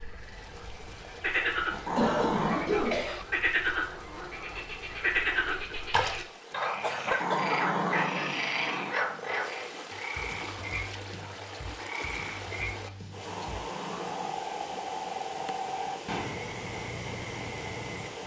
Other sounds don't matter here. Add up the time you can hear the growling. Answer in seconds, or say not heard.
4 s.